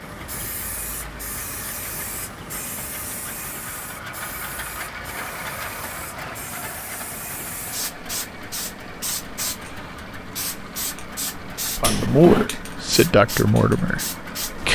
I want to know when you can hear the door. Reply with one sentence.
The door can be heard from 11.8 to 12.5 s.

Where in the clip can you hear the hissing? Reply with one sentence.
The hissing can be heard from 0.0 to 14.6 s.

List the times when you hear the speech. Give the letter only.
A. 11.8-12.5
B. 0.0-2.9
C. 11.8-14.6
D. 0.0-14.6
C.